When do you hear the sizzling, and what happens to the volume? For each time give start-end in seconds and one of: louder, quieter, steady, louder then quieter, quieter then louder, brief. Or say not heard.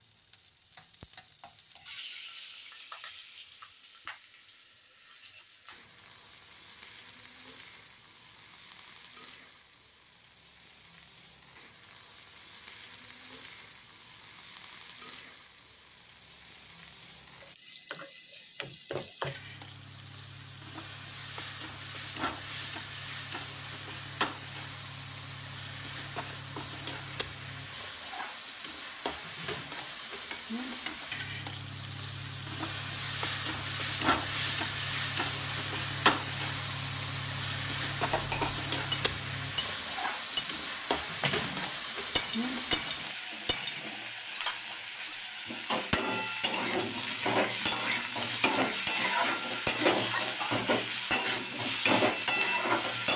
0.0-53.1 louder.